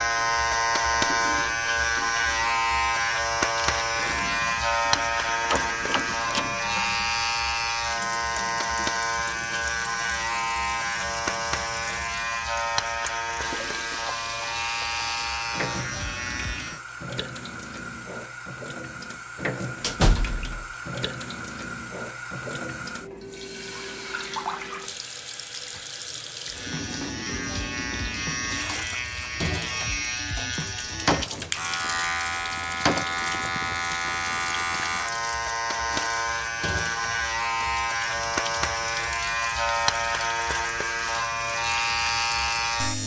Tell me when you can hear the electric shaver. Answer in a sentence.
You can hear the electric shaver from 0.0 to 16.8 s and from 26.4 to 43.0 s.